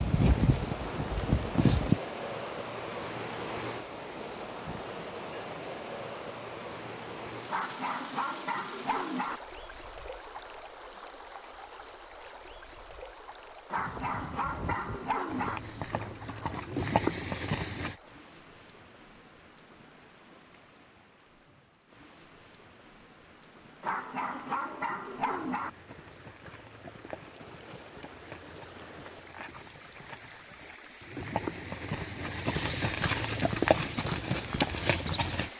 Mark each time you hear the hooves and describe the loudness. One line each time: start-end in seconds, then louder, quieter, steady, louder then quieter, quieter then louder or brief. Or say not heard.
0.0-2.0 brief
13.8-17.9 louder
25.5-35.5 louder.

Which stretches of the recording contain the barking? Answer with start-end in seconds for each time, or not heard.
7.5-9.4, 13.7-15.6, 23.8-25.7.